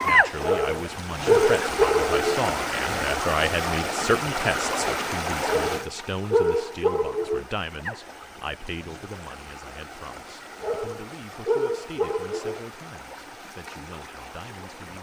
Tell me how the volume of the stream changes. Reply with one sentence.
The loudness of the stream goes down.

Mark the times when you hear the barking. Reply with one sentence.
You can hear the barking from 0.4 to 2.4 s, from 5.5 to 7.5 s and from 10.6 to 12.6 s.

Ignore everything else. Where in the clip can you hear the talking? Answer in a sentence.
The talking can be heard from 0.0 to 14.9 s.